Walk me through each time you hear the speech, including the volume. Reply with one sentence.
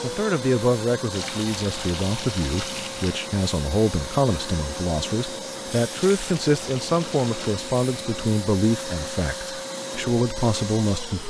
The speech can be heard from 0.0 to 11.2 s, at a steady volume.